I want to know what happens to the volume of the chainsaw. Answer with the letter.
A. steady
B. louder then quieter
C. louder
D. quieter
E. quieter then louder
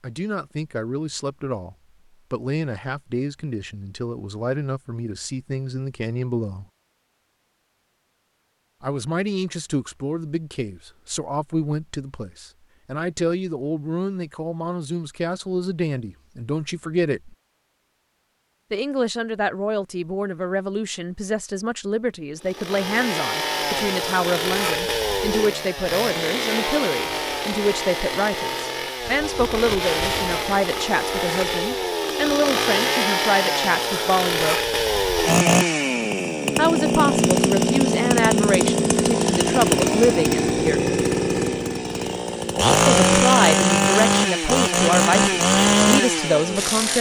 C.